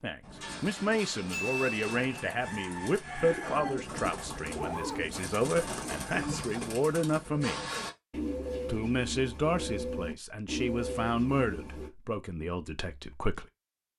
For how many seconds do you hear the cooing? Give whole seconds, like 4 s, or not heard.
12 s.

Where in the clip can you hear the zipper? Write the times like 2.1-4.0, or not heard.
4.5-5.3.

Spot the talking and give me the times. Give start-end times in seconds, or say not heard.
0.0-7.6, 8.7-13.4.